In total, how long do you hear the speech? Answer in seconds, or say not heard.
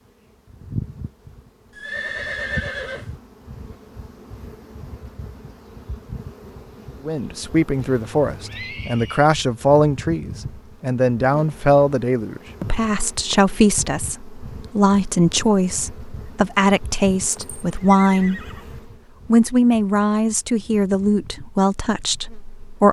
15 s.